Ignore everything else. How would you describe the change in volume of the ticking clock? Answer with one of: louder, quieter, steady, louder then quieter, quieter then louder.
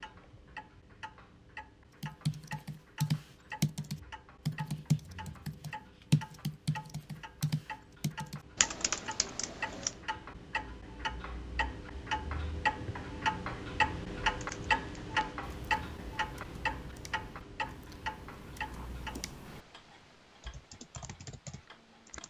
louder then quieter.